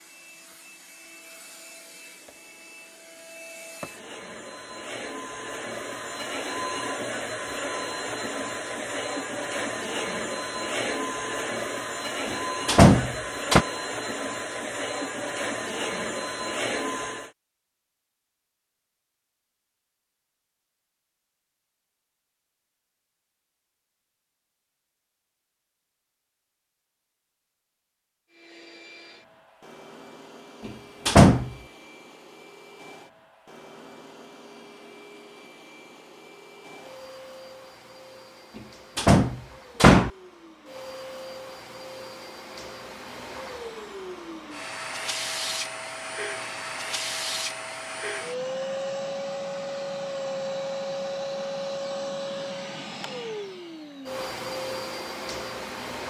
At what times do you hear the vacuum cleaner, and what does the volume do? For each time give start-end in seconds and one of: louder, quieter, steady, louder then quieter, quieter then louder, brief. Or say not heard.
0.0-17.3 louder
28.3-56.0 louder.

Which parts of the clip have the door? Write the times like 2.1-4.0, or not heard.
12.2-13.7, 30.6-31.5, 39.0-40.1.